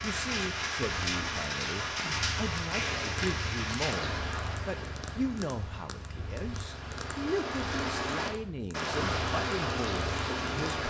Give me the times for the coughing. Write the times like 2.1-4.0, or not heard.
not heard.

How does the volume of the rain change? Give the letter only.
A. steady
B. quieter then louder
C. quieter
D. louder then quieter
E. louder
B.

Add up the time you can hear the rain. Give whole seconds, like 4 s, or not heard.
11 s.